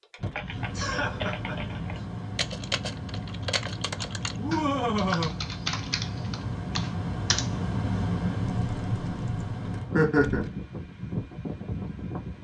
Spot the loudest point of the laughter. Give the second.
10 s.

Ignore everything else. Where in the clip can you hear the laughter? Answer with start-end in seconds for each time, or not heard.
0.2-1.8, 4.3-5.3, 9.9-10.4.